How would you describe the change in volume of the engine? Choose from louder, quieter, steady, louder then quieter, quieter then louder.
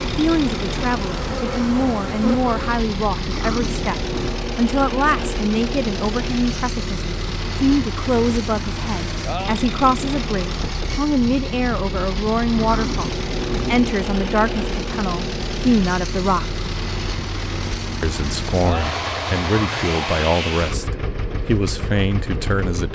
steady.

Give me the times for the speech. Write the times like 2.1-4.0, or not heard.
0.0-16.6, 18.0-22.9.